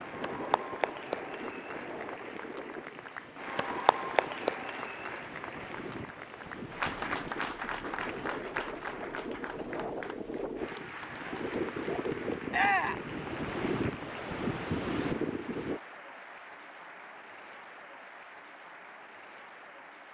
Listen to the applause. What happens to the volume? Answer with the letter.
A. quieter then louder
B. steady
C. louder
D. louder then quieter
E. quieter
E.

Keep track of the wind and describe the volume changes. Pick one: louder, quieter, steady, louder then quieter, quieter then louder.
louder.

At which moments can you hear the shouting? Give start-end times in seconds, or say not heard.
12.5-13.1.